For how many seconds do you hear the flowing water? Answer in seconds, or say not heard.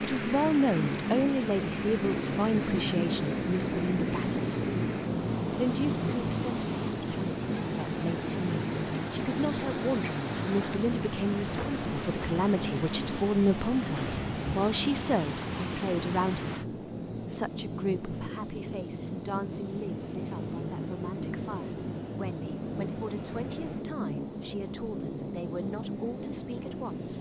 17 s.